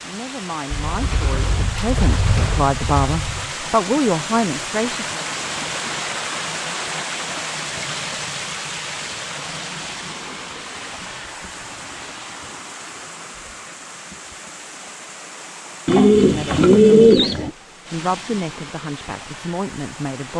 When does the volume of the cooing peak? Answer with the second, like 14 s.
17 s.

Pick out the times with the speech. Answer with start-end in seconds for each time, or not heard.
0.0-5.2, 16.2-20.3.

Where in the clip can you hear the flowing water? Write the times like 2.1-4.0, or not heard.
0.0-20.3.